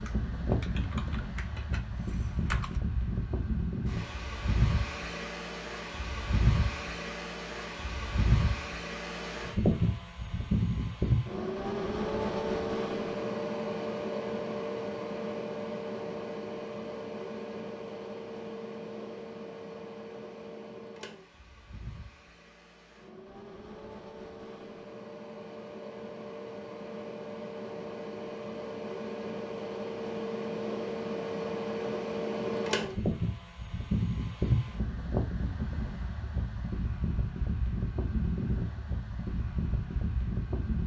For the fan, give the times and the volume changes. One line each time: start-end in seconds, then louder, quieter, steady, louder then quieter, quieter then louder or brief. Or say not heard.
0.0-40.8 quieter then louder.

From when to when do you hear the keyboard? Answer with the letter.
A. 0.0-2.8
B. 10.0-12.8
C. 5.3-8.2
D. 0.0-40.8
A.